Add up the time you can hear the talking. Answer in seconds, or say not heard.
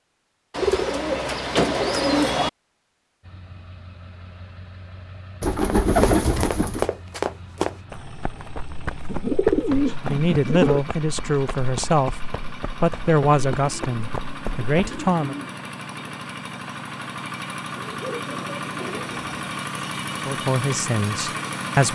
7 s.